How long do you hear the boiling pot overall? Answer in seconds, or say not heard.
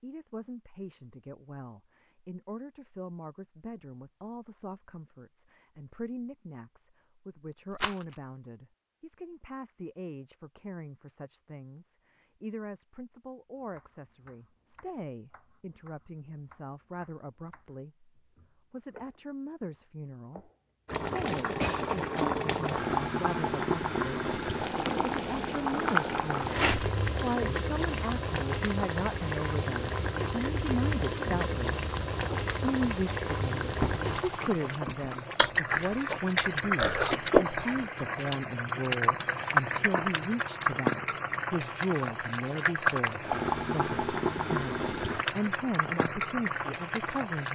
27 s.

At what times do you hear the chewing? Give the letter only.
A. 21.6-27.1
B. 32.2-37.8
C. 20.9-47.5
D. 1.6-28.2
B.